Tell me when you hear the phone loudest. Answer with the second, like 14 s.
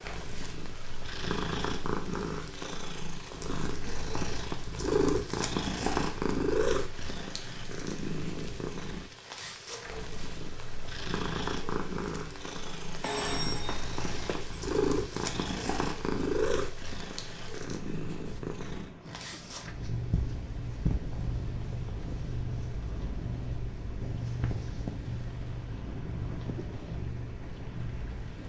13 s.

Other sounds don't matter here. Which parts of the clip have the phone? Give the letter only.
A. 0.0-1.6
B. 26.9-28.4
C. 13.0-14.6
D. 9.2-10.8
C.